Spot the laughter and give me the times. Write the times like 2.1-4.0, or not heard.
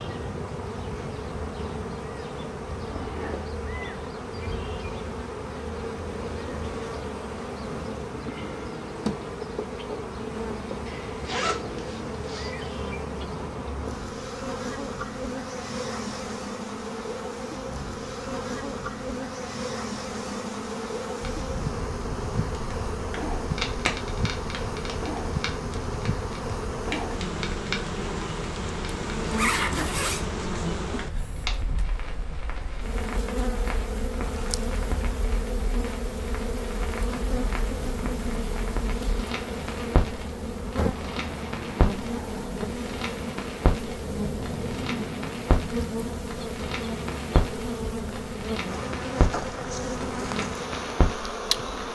not heard.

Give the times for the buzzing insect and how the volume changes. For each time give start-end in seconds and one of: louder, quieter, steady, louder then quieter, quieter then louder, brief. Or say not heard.
0.0-51.8 steady.